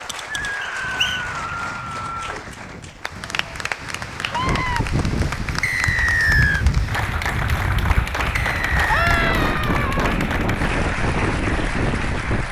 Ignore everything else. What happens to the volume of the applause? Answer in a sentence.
The loudness of the applause goes up.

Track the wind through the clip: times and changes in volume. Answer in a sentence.
You can hear the wind from 0.0 to 12.4 s, getting louder.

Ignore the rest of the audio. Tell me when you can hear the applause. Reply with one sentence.
The applause can be heard from 0.0 to 12.4 s.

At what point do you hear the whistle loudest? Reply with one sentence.
The volume of the whistle peaks at 6 seconds.